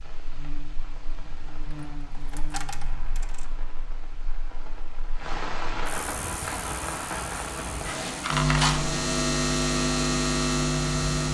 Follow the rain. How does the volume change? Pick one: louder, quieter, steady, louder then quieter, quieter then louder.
louder.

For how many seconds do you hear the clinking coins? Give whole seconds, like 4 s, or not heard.
3 s.